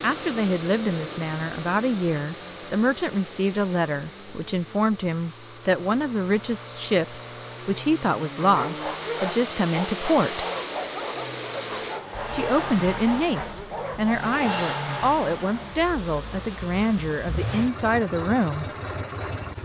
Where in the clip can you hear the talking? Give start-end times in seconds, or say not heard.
0.0-10.4, 12.3-18.6.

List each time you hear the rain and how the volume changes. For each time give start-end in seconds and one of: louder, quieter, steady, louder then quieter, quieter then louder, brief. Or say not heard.
not heard.